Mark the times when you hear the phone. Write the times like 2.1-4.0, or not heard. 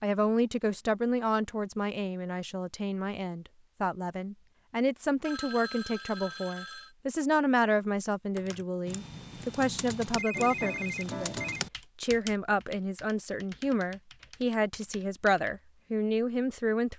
5.2-7.0, 10.2-11.6.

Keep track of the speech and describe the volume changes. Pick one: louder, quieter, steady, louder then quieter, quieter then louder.
steady.